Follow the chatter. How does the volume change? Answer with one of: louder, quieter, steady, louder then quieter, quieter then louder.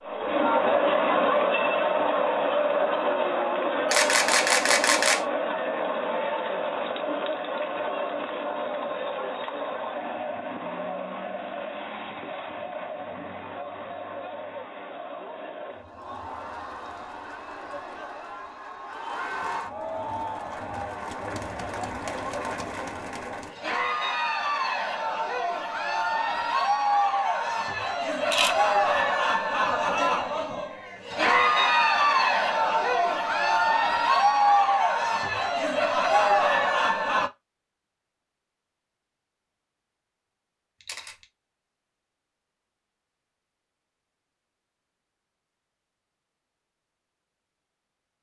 quieter then louder.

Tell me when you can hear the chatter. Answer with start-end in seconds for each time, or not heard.
0.0-37.3.